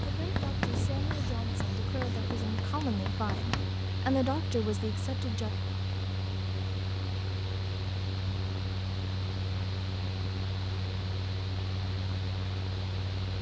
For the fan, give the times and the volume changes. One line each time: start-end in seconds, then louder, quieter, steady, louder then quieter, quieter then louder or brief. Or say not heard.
0.0-13.3 steady.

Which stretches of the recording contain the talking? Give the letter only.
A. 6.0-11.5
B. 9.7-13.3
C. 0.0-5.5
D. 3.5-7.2
C.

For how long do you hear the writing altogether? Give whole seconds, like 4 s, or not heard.
4 s.